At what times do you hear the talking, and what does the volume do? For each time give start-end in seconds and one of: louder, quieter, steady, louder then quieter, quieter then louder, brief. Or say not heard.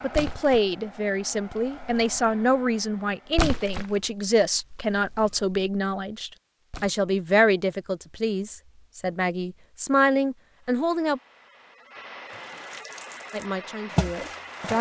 0.0-11.2 steady
13.3-14.7 brief.